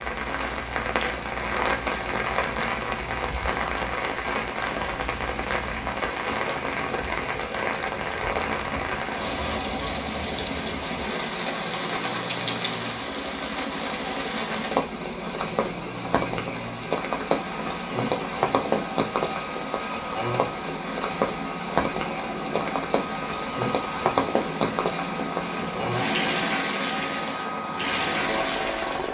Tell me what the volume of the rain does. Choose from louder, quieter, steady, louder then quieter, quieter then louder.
steady.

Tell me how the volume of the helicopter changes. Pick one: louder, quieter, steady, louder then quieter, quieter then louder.
louder.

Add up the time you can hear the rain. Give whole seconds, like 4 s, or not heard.
29 s.